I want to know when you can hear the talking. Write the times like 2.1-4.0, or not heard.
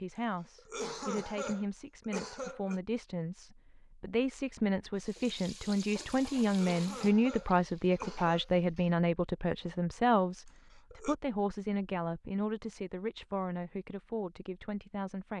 0.0-15.3.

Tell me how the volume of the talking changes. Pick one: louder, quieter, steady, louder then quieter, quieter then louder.
louder then quieter.